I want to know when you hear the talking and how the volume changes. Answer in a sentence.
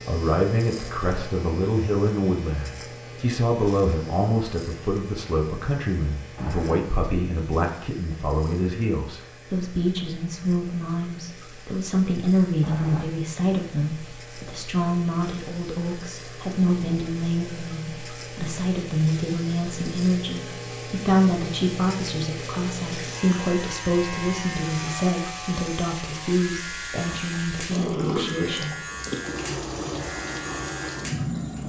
The talking can be heard from 0.1 to 28.8 s, at a steady volume.